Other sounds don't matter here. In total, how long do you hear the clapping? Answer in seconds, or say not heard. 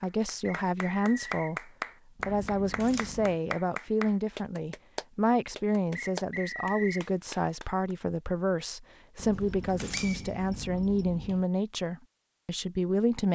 8 s.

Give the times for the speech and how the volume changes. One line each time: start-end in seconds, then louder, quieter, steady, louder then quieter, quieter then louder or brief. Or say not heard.
0.0-13.3 steady.